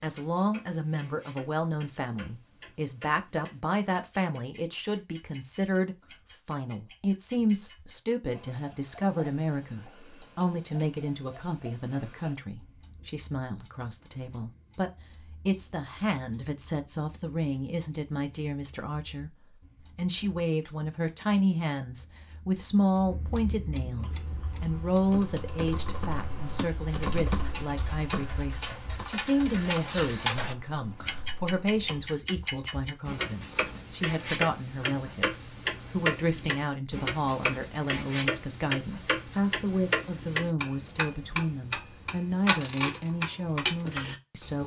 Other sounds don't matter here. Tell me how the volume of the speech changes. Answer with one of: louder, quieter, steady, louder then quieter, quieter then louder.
steady.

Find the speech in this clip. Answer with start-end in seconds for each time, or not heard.
0.0-19.3, 19.9-44.6.